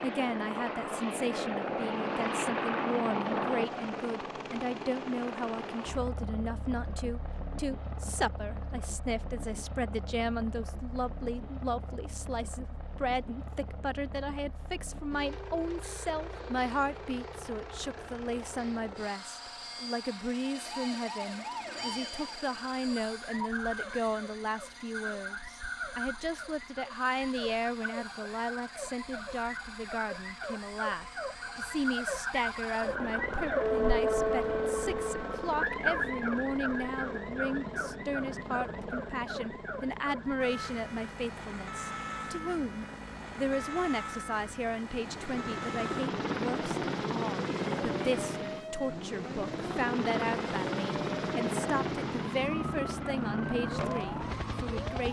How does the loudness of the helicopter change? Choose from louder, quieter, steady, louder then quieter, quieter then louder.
quieter then louder.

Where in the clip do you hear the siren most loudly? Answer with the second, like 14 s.
34 s.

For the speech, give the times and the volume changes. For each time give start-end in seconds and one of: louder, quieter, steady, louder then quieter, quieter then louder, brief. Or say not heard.
0.0-55.0 steady.